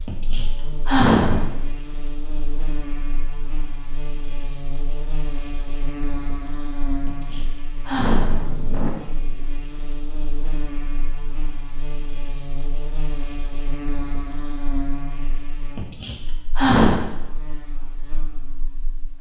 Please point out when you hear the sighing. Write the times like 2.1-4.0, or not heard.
0.1-1.5, 7.0-8.9, 15.8-17.1.